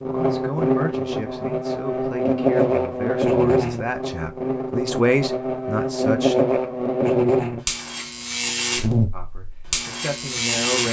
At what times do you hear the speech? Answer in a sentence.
The speech can be heard from 0.0 to 6.3 s and from 9.1 to 10.8 s.